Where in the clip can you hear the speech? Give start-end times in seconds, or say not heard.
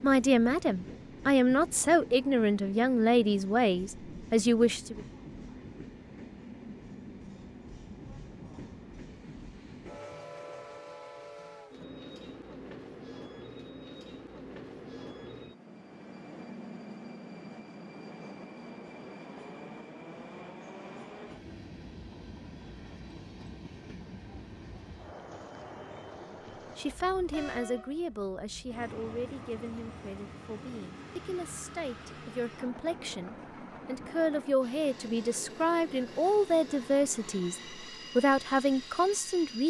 0.0-5.0, 26.2-39.6.